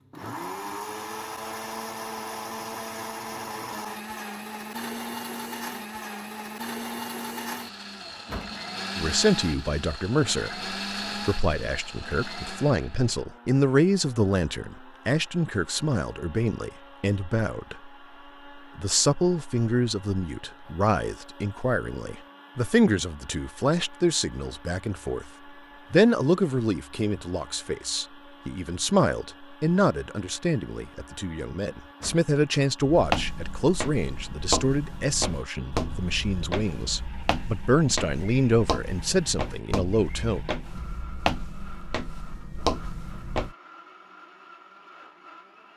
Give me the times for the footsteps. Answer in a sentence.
You can hear the footsteps from 32.9 to 43.5 s.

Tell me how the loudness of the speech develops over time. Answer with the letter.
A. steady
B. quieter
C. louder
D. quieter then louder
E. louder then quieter
A.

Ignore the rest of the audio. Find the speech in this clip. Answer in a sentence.
You can hear the speech from 8.9 to 17.9 s, from 18.6 to 25.3 s and from 25.9 to 40.4 s.